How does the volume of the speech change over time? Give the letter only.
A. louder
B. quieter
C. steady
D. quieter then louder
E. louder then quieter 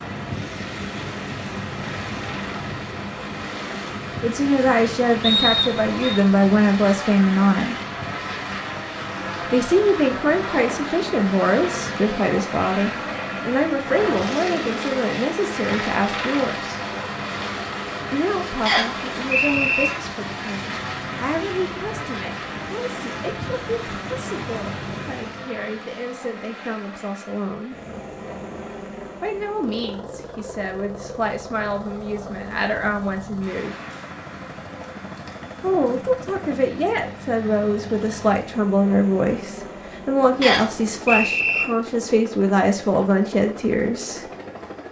D.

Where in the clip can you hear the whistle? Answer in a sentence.
You can hear the whistle from 5.2 to 6.2 s, from 18.6 to 19.9 s and from 40.4 to 41.6 s.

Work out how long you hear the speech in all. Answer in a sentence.
The speech can be heard for 34 seconds in total.